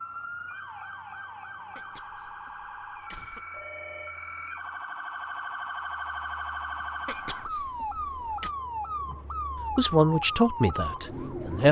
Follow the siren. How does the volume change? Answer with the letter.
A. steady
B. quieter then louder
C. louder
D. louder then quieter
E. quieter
C.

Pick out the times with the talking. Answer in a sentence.
You can hear the talking from 9.1 to 11.6 s.